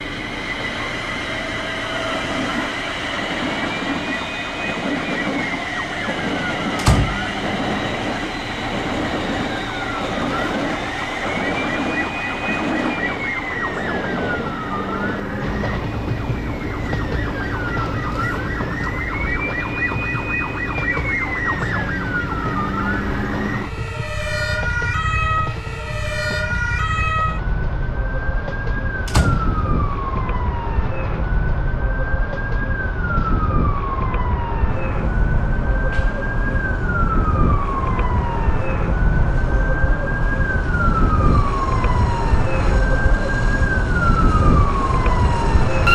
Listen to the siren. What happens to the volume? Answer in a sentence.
The loudness of the siren goes up.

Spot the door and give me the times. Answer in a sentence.
The door can be heard from 6.8 to 7.7 s and from 29.1 to 30.0 s.